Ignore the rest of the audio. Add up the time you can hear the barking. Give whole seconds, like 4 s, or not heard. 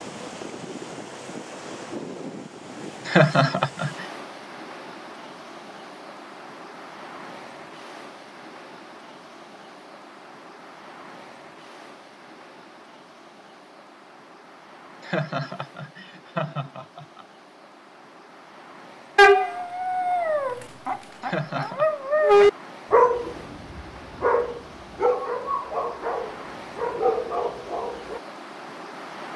9 s.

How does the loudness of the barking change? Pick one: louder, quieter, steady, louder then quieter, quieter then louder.
louder then quieter.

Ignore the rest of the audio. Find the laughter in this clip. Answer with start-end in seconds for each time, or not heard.
3.0-4.0, 15.0-17.2, 21.2-21.9.